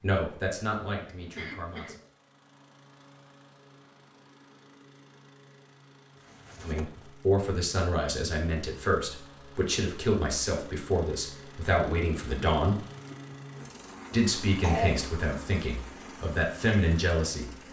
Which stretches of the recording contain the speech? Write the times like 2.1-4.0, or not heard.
0.0-2.0, 6.6-12.8, 14.1-17.5.